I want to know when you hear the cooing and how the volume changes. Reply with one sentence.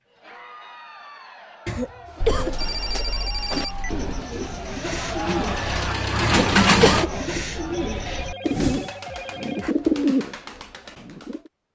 The cooing can be heard from 2.0 to 11.4 s, getting louder.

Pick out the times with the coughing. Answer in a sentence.
You can hear the coughing from 1.6 to 2.5 s and from 6.2 to 7.1 s.